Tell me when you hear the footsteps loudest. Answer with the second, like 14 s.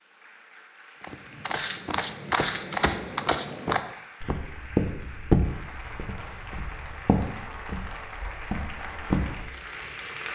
5 s.